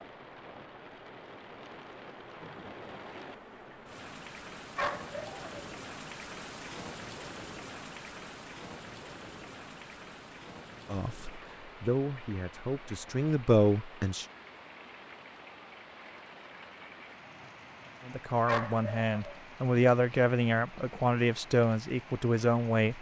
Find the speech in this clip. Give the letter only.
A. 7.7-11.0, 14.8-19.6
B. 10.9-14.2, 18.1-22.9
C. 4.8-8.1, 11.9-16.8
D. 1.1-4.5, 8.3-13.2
B.